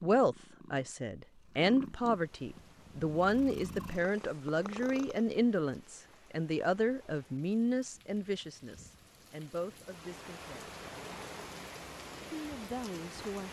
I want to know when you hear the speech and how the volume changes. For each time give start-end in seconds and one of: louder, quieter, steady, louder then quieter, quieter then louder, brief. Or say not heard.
0.0-10.8 quieter
12.3-13.4 brief.